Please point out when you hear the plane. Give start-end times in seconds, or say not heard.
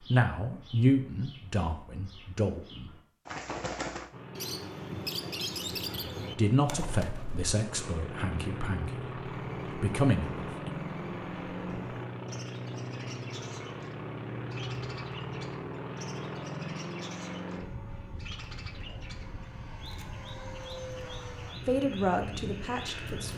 4.1-23.3.